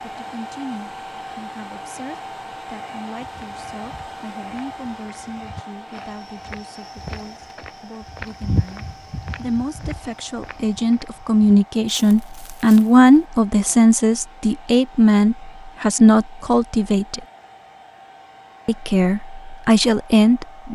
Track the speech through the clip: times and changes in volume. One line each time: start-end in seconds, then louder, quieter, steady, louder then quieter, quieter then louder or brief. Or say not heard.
0.0-17.2 louder
18.6-20.7 brief.